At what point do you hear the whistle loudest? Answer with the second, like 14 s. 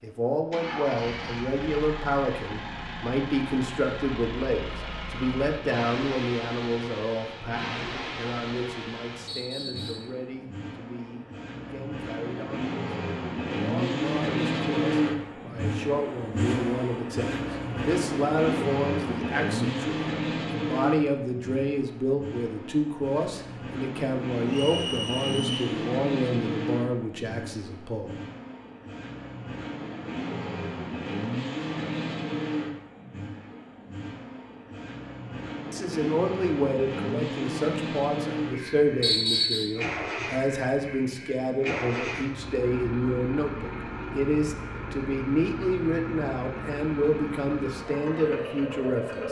39 s.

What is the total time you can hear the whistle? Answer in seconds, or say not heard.
3 s.